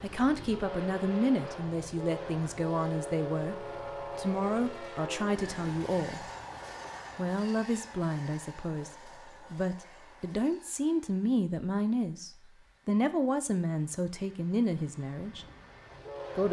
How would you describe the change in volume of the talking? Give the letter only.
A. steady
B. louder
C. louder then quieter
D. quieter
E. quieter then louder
A.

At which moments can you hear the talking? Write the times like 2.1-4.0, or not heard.
0.0-6.2, 7.2-15.4.